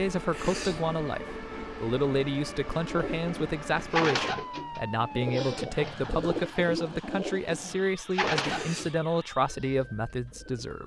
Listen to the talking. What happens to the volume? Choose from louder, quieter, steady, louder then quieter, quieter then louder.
steady.